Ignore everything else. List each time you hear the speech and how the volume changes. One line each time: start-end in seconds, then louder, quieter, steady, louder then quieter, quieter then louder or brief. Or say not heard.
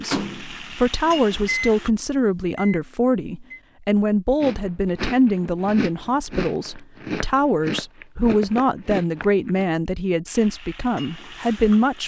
0.0-12.0 steady.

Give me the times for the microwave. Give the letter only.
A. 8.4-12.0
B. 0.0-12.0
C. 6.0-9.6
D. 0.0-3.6
D.